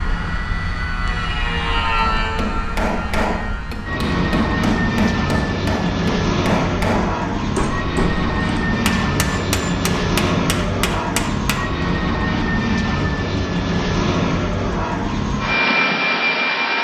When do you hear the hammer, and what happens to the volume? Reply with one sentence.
You can hear the hammer from 1.9 to 11.8 s, at a steady volume.